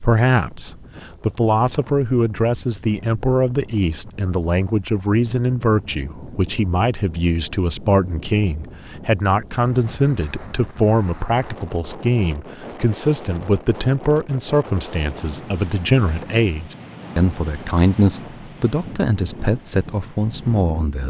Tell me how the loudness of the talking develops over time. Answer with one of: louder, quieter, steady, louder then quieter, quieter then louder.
steady.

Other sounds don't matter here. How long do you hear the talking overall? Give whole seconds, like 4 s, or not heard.
21 s.